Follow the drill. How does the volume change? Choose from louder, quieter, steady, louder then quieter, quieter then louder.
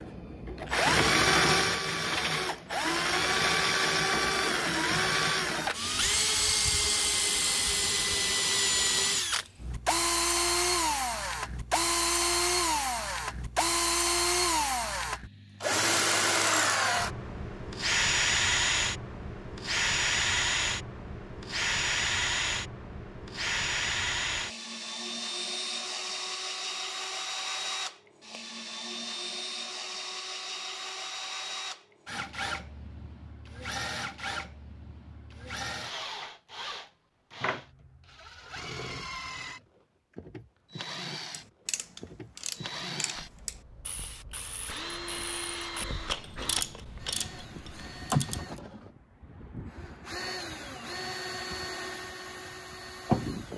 quieter.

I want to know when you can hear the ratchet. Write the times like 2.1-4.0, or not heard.
41.3-48.6.